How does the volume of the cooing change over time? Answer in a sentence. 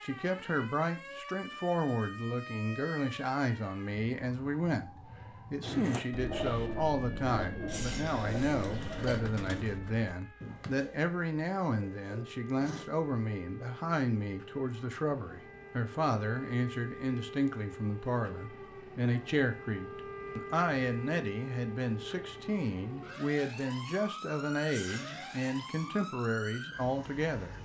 The loudness of the cooing goes down.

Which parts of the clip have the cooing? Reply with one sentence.
The cooing can be heard from 5.6 to 12.9 s.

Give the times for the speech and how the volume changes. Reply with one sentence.
The speech can be heard from 0.0 to 27.5 s, at a steady volume.